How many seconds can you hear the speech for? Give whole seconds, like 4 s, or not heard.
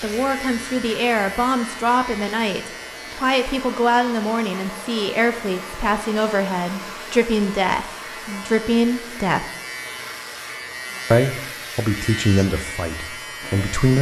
12 s.